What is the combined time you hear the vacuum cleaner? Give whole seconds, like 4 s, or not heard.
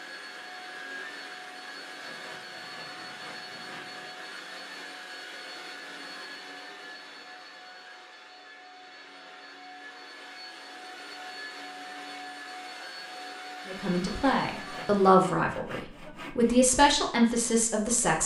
15 s.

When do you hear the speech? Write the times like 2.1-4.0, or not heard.
13.7-18.2.